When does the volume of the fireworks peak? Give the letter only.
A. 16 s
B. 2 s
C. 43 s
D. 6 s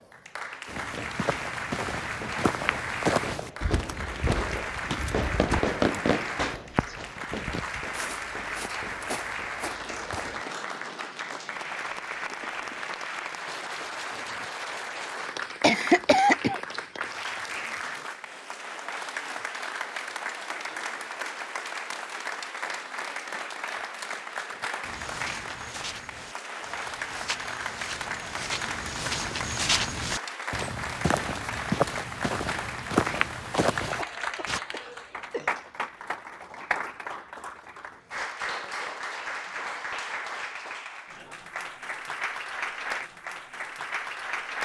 D.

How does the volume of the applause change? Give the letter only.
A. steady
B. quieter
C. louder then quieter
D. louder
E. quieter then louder
A.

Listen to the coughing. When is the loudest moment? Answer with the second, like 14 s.
16 s.